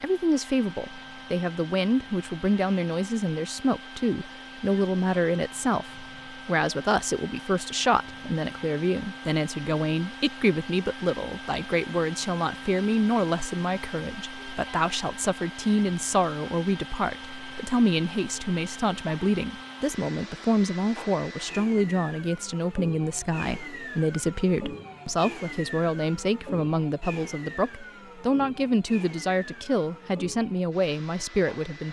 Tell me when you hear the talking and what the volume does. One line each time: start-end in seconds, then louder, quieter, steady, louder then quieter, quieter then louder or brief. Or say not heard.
0.0-31.8 steady.